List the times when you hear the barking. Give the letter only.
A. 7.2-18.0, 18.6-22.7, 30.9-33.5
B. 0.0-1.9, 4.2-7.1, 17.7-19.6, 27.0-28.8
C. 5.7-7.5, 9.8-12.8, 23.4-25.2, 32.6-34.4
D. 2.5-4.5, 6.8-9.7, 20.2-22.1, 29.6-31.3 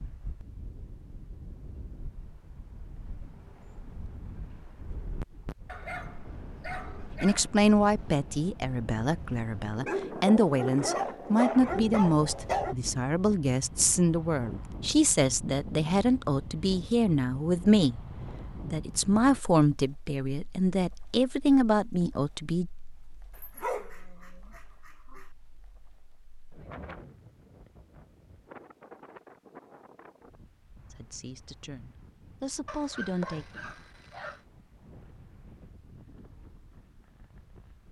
C.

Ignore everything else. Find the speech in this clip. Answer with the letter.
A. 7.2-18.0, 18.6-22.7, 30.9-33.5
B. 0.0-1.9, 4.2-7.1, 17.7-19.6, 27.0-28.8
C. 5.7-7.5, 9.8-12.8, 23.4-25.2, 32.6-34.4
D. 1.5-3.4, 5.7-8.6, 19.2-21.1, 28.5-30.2
A.